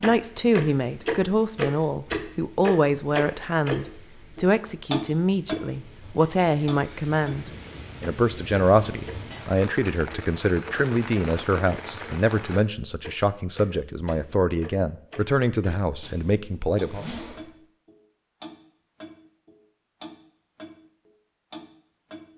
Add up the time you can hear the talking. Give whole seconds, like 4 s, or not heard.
17 s.